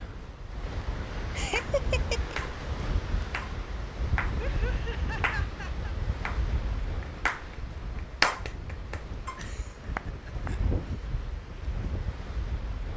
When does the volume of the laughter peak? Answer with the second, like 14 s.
2 s.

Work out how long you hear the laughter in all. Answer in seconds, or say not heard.
4 s.